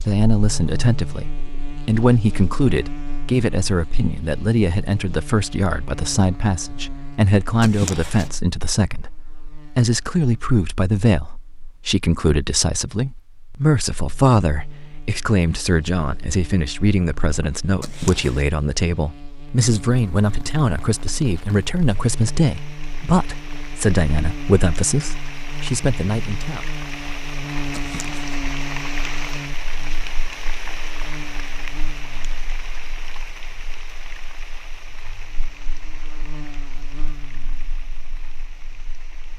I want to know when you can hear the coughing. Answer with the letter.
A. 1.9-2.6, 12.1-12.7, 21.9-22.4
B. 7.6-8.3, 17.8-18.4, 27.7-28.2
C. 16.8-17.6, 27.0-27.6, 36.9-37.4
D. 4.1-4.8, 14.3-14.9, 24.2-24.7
B.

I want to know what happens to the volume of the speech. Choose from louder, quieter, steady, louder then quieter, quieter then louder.
steady.